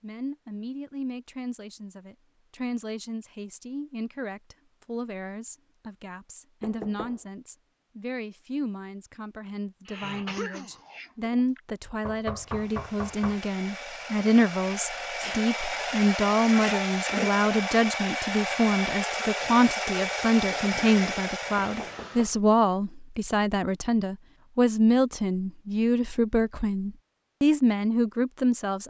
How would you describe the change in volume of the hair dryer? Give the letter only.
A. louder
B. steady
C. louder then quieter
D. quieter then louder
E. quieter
A.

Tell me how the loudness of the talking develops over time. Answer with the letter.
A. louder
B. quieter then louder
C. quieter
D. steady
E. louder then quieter
A.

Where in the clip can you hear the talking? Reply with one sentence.
You can hear the talking from 0.0 to 28.8 s.